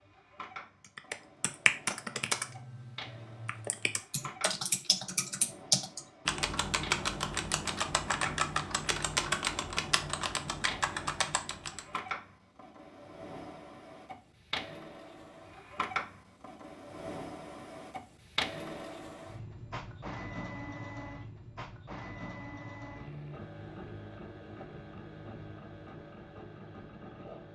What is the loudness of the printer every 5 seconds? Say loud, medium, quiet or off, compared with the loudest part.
medium, medium, loud, loud, loud, medium.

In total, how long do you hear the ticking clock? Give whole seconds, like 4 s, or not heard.
not heard.